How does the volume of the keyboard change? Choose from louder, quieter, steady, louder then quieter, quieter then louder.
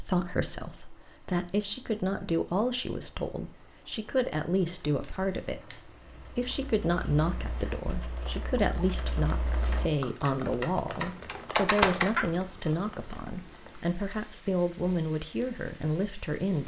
louder.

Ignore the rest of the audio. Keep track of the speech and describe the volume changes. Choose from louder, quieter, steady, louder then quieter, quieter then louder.
steady.